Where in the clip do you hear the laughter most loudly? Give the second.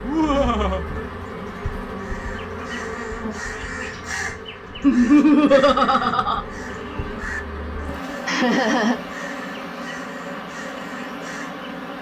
5 s.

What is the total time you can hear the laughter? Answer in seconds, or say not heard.
3 s.